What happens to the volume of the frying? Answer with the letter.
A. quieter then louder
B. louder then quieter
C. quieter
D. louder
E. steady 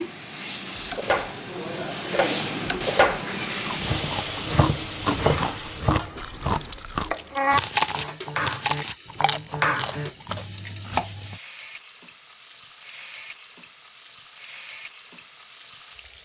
C.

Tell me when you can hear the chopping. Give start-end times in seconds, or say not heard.
0.9-11.4.